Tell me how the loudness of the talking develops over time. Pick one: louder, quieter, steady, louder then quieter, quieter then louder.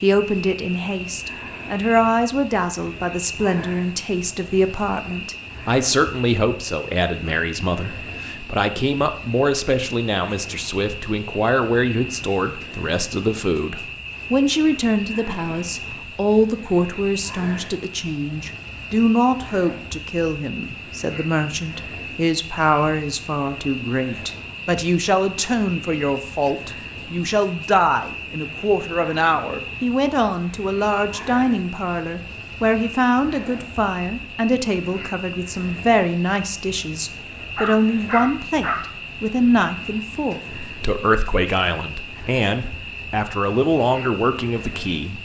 steady.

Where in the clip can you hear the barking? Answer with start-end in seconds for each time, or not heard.
37.5-38.8.